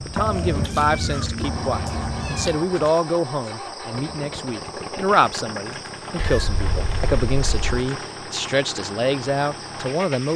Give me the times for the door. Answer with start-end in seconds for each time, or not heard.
not heard.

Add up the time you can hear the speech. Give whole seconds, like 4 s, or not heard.
10 s.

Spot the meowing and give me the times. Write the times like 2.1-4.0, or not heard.
0.1-2.6, 6.2-7.8.